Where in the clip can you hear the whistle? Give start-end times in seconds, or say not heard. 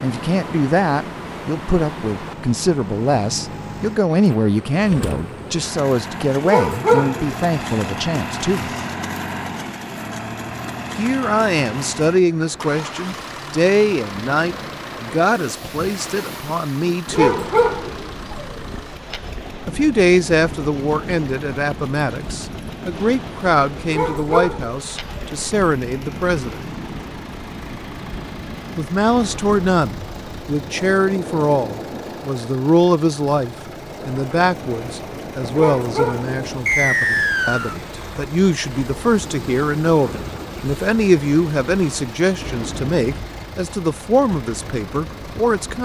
36.6-37.8.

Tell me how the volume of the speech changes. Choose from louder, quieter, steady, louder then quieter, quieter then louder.
steady.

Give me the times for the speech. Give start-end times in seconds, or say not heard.
0.0-8.7, 10.9-17.4, 19.6-26.6, 28.8-45.8.